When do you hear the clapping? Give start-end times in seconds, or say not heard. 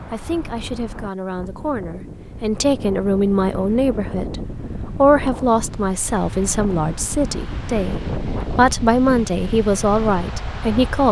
not heard.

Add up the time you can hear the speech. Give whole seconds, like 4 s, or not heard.
11 s.